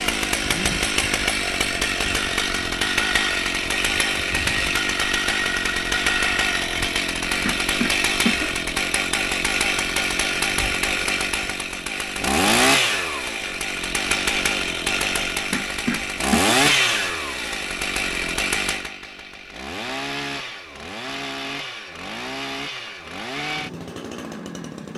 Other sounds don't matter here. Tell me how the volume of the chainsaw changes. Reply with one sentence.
The loudness of the chainsaw goes down.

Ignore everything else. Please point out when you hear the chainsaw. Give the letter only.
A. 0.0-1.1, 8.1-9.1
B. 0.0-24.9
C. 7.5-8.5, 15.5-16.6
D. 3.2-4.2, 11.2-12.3
B.